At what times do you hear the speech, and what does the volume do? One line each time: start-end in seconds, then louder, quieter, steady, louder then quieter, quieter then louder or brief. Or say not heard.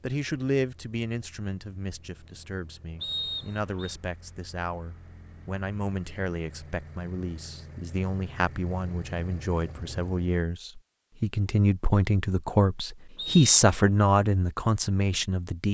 0.0-15.6 louder.